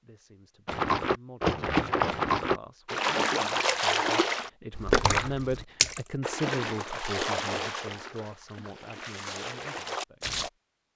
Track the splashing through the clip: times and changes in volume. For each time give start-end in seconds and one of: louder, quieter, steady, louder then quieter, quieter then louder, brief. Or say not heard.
0.7-10.5 quieter.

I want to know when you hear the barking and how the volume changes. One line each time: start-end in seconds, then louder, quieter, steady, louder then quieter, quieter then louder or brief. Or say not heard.
not heard.